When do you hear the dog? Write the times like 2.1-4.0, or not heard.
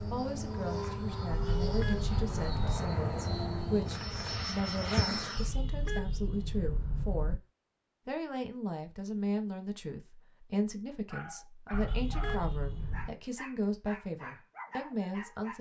11.1-15.5.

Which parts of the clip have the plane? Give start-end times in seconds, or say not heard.
0.0-5.5.